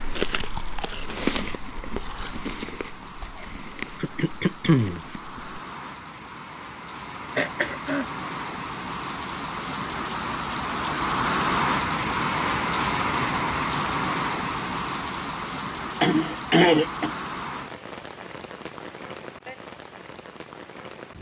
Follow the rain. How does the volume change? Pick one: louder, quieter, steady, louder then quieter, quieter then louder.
louder then quieter.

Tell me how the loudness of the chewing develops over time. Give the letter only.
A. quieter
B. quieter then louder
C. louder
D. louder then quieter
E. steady
A.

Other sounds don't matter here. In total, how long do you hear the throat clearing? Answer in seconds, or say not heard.
3 s.